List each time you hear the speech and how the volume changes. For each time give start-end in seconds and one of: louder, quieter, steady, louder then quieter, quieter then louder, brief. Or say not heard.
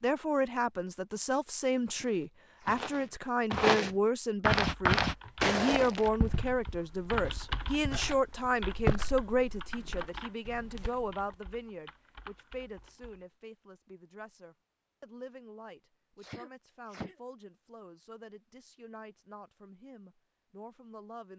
0.0-21.3 quieter.